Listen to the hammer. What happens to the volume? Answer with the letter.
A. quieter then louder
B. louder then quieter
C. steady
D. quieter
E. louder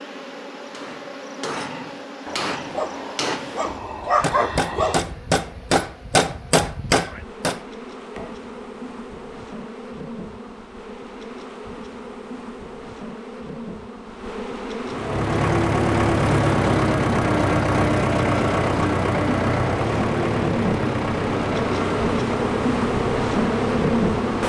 E.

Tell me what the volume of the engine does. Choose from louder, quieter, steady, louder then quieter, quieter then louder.
quieter.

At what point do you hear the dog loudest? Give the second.
4 s.